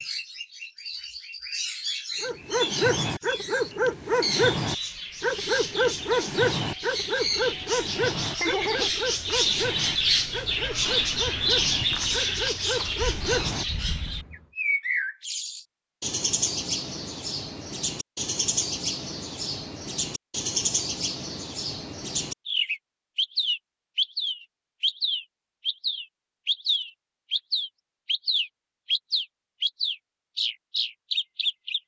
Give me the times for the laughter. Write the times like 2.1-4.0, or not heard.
7.8-8.9.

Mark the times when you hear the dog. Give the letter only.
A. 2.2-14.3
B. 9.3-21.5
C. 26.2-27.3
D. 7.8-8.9
A.